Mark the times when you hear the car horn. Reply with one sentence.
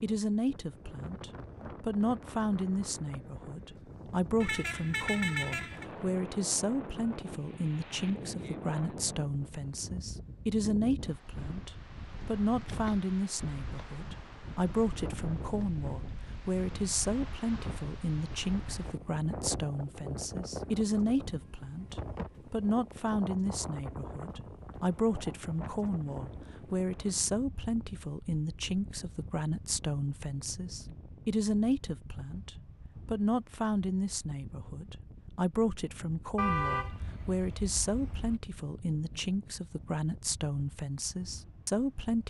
The car horn can be heard from 4.4 to 5.8 s and from 36.4 to 38.4 s.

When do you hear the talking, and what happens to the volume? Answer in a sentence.
You can hear the talking from 0.0 to 42.2 s, at a steady volume.